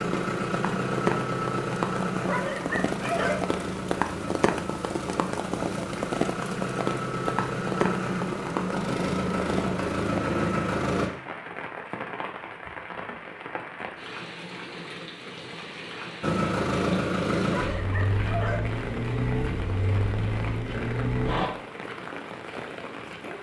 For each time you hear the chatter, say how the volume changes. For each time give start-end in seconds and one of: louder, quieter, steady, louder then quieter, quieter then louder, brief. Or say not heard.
not heard.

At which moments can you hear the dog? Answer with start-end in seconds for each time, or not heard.
2.2-3.5, 17.4-18.7.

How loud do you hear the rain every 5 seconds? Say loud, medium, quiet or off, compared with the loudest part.
loud, loud, medium, medium, medium.